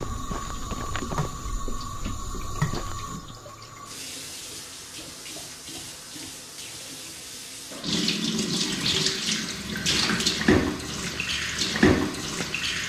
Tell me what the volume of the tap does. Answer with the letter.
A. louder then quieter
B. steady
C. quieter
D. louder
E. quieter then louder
E.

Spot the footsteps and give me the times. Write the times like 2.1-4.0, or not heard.
0.0-3.4, 9.2-12.8.